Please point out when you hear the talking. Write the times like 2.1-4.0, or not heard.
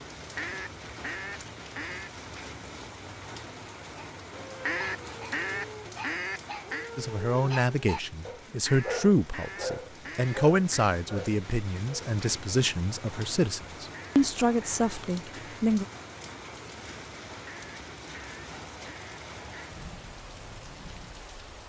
7.0-15.8.